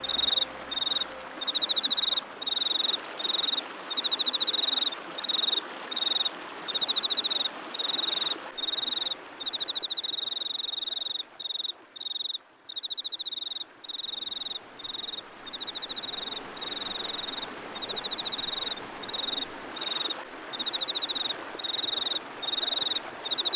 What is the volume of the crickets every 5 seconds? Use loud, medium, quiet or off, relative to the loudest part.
loud, loud, medium, medium, loud.